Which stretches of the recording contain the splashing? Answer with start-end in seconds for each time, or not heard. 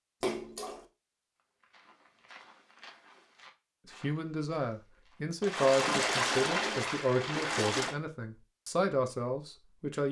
0.2-0.8, 5.4-8.0.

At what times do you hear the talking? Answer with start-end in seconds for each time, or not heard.
3.9-10.0.